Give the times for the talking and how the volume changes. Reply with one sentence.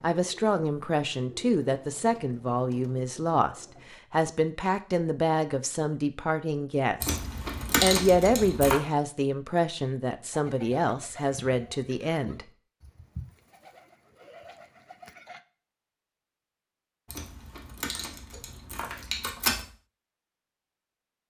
The talking can be heard from 0.0 to 7.2 s, at a steady volume; and from 7.8 to 12.4 s, getting quieter.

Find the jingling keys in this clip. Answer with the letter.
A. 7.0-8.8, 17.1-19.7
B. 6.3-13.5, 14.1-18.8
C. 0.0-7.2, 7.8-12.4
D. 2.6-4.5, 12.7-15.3
A.